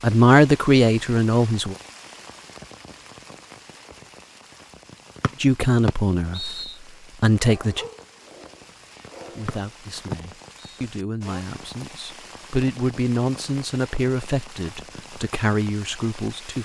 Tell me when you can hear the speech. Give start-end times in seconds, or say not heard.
0.0-1.8, 5.4-6.5, 7.2-7.8, 9.3-16.6.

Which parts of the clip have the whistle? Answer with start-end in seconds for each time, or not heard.
5.2-6.8, 9.4-10.8.